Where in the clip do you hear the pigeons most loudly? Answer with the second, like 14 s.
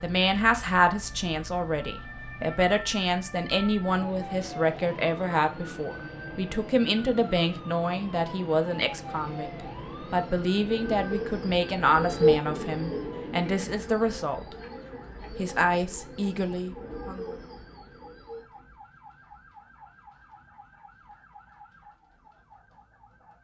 12 s.